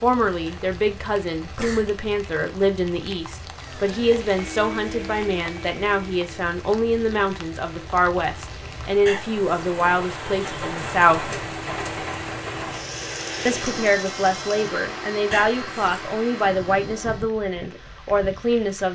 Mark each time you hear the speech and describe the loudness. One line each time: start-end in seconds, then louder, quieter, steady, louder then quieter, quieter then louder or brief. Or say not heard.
0.0-11.3 steady
13.4-18.9 steady.